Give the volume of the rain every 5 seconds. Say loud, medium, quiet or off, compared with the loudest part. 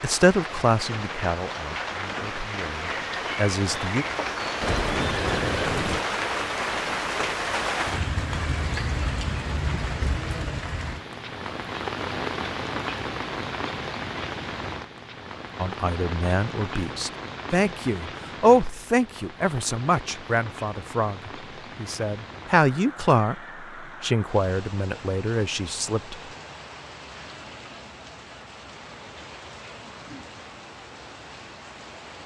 loud, loud, loud, medium, quiet, quiet, quiet.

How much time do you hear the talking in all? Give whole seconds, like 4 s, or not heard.
15 s.